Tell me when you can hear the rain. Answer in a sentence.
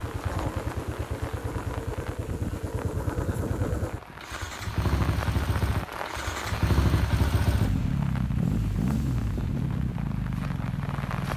You can hear the rain from 0.0 to 11.3 s.